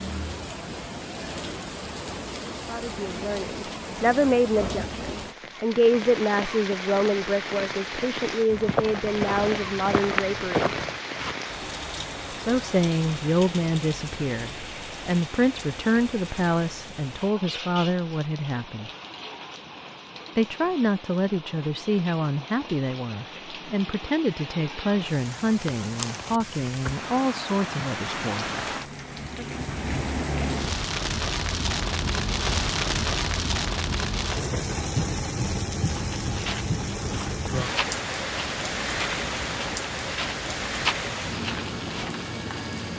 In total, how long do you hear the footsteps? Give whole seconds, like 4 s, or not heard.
9 s.